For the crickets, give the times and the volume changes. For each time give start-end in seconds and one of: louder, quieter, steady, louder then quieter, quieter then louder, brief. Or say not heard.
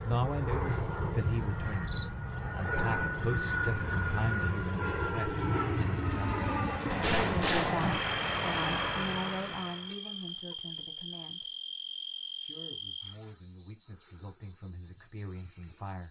0.0-16.0 steady.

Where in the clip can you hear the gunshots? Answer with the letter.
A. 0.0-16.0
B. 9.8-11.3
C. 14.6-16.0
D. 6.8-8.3
D.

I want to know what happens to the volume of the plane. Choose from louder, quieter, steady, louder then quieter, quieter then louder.
steady.